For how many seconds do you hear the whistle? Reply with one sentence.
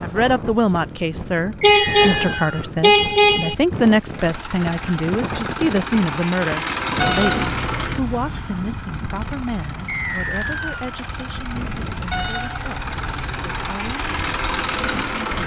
The whistle can be heard for 2 seconds in total.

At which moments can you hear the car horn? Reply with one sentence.
The car horn can be heard from 1.6 to 3.5 s, from 7.0 to 8.4 s and from 12.1 to 13.7 s.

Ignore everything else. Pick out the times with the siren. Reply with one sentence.
The siren can't be heard in this clip.